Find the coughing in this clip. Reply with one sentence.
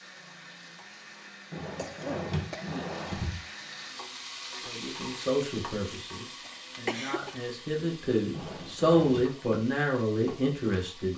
You can hear the coughing from 1.7 to 3.0 s and from 6.5 to 7.3 s.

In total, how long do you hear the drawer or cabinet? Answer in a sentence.
The drawer or cabinet can be heard for 3 seconds in total.